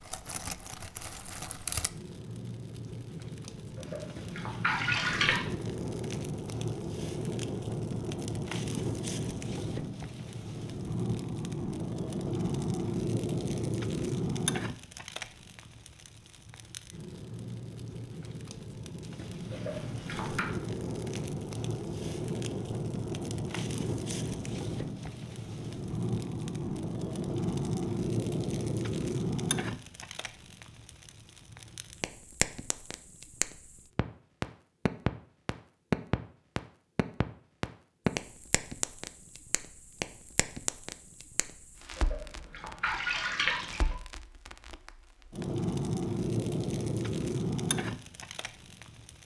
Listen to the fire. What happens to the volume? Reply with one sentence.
The volume of the fire stays about the same.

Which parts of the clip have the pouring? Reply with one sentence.
The pouring can be heard from 3.8 to 5.5 s, from 19.5 to 20.4 s and from 42.0 to 44.0 s.